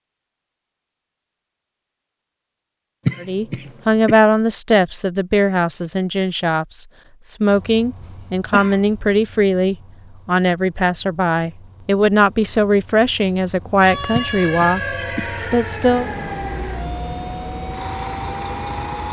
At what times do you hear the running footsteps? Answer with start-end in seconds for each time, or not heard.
not heard.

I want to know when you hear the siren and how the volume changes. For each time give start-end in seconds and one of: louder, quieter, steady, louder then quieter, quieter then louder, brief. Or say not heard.
13.8-19.0 quieter.